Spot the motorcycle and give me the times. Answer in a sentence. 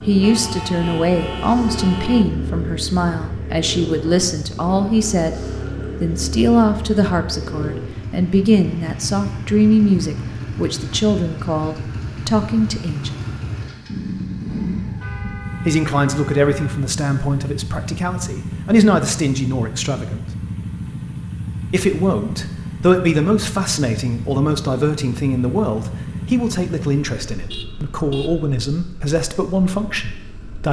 You can hear the motorcycle from 0.0 to 30.6 s.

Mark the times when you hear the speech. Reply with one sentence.
You can hear the speech from 0.0 to 13.2 s, from 15.7 to 20.2 s and from 21.6 to 30.6 s.